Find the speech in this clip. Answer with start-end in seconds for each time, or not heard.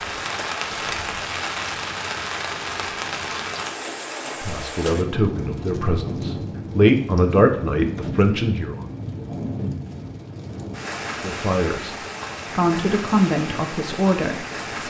4.4-8.8, 11.2-11.9, 12.6-14.8.